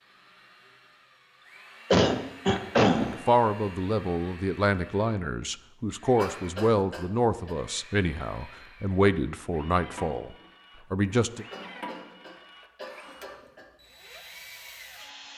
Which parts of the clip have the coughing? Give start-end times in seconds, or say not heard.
1.9-3.2, 6.2-7.5, 11.5-13.7.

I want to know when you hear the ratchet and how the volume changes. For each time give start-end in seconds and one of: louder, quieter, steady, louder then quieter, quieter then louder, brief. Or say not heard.
not heard.